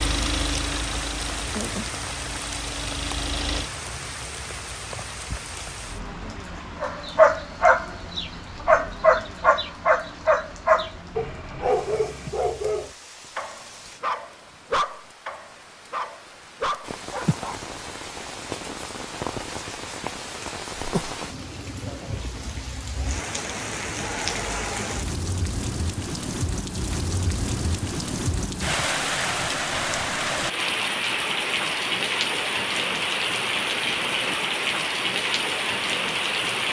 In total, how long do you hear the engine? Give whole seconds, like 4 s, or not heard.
4 s.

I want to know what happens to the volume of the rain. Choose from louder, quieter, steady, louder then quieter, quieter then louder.
quieter then louder.